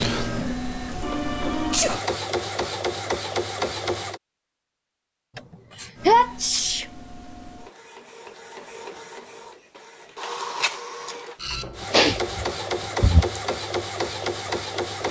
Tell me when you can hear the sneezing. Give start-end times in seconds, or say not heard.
1.0-2.0, 5.3-6.8, 11.9-13.4.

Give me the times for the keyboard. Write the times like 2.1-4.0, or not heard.
not heard.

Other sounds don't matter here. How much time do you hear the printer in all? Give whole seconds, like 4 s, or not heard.
13 s.